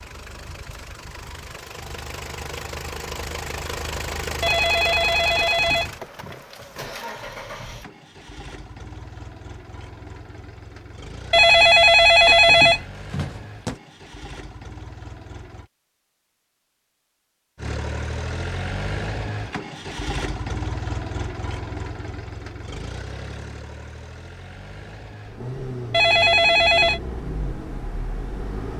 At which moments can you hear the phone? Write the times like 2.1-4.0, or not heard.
4.4-6.3, 11.3-13.8, 25.9-27.0.